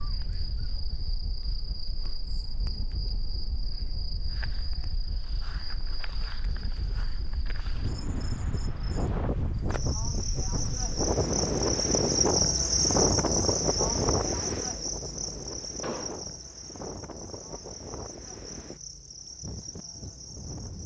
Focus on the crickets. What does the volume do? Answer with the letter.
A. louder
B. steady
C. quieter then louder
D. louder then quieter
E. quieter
D.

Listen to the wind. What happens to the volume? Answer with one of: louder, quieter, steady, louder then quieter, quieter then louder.
louder then quieter.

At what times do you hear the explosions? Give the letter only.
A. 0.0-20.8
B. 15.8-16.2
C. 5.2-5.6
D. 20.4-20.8
B.